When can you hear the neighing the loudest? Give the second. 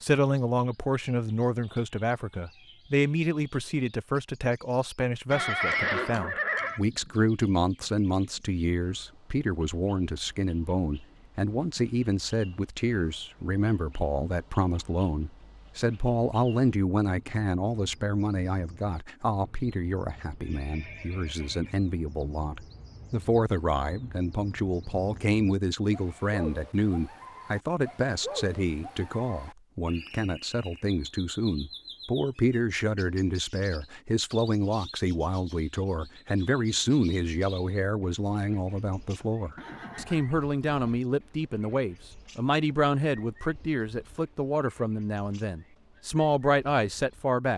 6 s.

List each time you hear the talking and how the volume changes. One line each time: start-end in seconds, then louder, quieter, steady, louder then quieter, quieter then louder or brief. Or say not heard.
0.0-47.5 steady.